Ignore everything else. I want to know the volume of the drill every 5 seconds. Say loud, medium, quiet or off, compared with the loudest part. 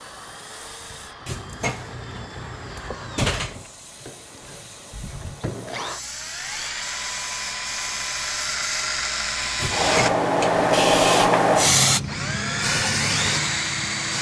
quiet, loud, loud.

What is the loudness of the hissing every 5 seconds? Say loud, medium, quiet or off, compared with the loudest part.
quiet, quiet, loud.